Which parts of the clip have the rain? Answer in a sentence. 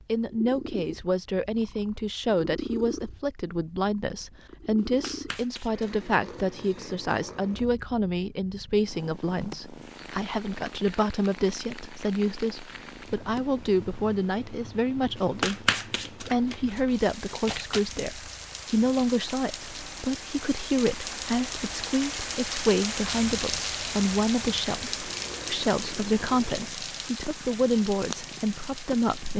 The rain can be heard from 9.7 to 29.3 s.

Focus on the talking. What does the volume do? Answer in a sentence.
The loudness of the talking stays about the same.